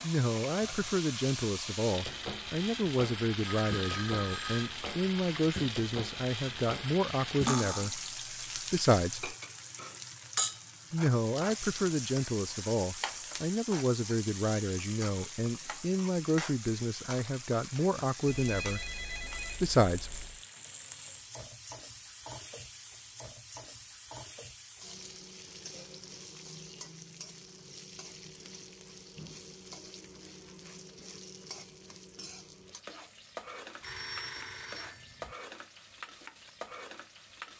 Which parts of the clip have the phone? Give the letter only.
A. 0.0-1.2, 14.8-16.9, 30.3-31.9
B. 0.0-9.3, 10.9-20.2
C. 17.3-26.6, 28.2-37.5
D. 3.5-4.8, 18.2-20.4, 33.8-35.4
D.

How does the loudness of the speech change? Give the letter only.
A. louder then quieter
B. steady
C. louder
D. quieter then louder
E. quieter
B.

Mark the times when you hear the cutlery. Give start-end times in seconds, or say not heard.
7.5-7.9.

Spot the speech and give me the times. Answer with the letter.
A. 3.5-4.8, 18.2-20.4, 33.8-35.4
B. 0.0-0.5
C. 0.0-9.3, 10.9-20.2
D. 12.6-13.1
C.